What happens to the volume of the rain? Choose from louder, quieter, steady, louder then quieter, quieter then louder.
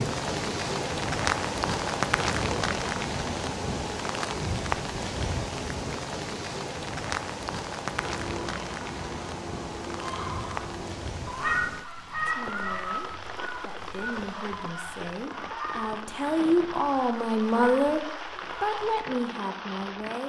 quieter.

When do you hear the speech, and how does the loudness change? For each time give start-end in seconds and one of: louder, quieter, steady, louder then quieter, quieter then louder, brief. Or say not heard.
12.2-18.0 louder
18.6-20.2 brief.